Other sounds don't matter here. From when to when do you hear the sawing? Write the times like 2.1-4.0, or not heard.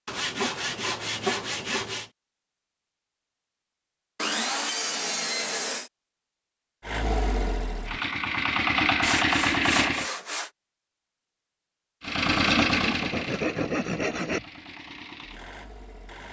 0.1-2.1, 4.2-5.9, 9.0-10.5, 12.4-14.4.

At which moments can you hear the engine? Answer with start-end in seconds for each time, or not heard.
6.8-10.1, 12.0-16.2.